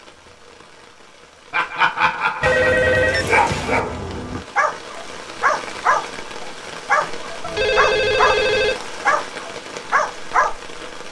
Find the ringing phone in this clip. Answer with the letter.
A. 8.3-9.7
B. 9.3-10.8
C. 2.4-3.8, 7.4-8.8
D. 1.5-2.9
C.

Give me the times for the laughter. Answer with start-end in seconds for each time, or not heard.
1.5-2.9.